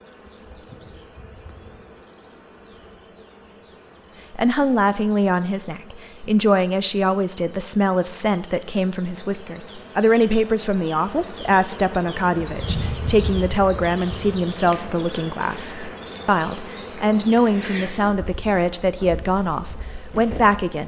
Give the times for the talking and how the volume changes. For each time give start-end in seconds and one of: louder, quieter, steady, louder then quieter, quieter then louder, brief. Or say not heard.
4.3-20.8 steady.